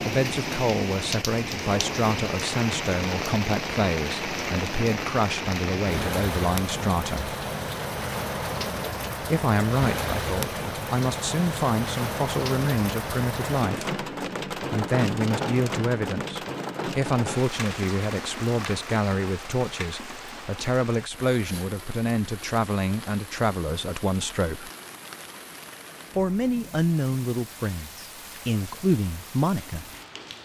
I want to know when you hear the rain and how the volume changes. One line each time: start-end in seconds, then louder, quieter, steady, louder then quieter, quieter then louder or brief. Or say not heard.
0.0-30.4 quieter.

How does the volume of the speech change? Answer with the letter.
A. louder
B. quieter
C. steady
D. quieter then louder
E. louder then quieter
C.